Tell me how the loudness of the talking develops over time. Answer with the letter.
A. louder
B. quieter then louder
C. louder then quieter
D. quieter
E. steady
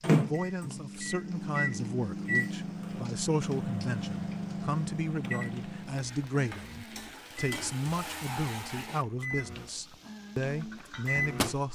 E.